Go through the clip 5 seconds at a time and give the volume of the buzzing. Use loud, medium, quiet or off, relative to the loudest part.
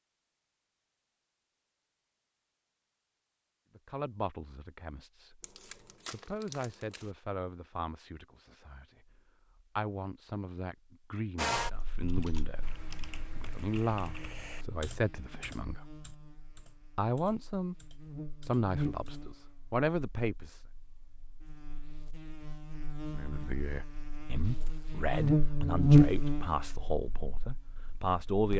off, off, quiet, quiet, quiet, loud.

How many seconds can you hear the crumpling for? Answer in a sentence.
The crumpling can be heard for 2 seconds in total.